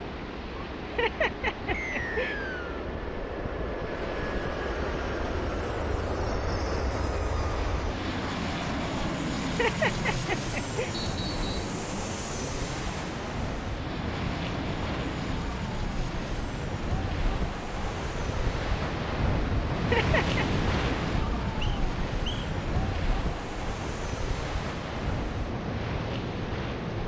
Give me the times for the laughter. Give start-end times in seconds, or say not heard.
0.8-2.4, 9.4-10.9, 19.8-20.4.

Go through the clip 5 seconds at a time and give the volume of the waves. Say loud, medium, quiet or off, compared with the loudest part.
medium, medium, medium, loud, loud, loud.